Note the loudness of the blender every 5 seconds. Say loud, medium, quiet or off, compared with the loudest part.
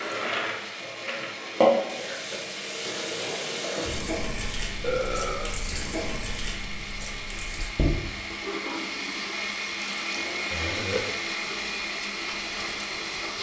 medium, loud, loud.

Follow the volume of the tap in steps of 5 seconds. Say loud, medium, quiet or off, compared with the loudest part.
loud, medium, medium.